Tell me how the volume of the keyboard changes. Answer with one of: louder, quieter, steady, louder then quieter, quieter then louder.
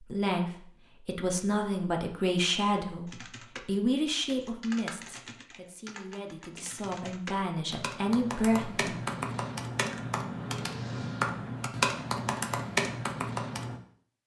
louder.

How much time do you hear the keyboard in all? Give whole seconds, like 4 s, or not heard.
11 s.